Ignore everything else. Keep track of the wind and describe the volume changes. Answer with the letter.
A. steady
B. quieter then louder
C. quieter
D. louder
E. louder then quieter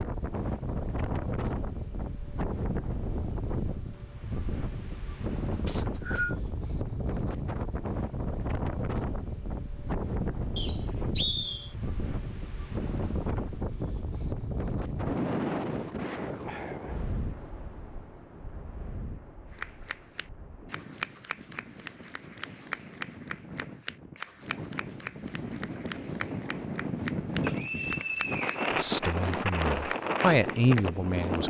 B.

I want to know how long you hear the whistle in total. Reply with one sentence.
The whistle can be heard for 3 seconds in total.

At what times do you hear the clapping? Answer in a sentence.
You can hear the clapping from 19.5 to 30.9 s.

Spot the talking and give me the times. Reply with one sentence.
You can hear the talking from 28.8 to 31.4 s.